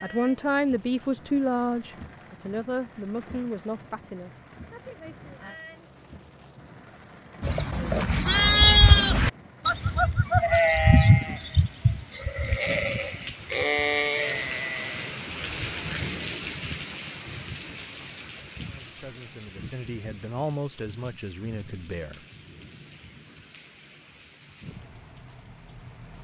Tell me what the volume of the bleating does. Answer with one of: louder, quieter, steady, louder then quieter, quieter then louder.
quieter.